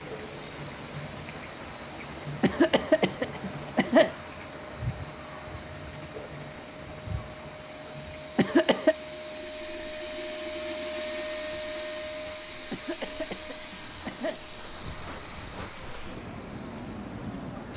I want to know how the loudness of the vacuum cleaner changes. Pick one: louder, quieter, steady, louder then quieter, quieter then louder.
louder then quieter.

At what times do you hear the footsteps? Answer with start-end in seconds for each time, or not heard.
not heard.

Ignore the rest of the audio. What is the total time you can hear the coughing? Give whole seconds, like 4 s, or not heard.
4 s.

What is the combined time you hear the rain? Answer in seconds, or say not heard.
18 s.